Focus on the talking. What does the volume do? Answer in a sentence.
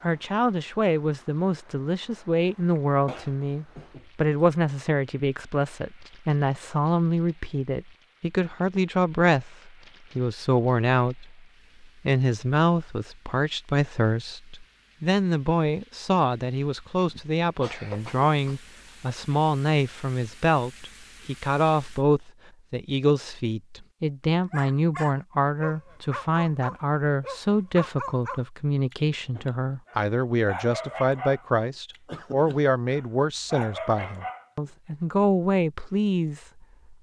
The loudness of the talking stays about the same.